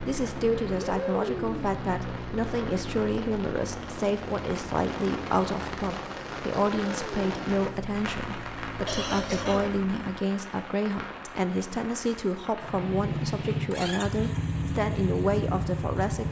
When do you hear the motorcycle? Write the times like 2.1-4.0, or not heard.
0.0-10.2, 12.6-16.2.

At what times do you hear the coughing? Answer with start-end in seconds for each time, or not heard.
8.8-9.8.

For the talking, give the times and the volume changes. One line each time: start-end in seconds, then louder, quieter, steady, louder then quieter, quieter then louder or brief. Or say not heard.
0.1-16.2 steady.